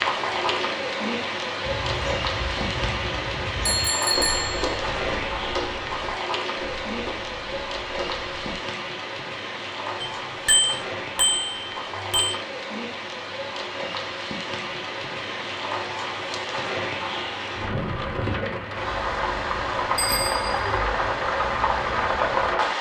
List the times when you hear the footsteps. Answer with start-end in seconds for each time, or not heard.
1.6-8.6.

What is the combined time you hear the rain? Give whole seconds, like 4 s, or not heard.
23 s.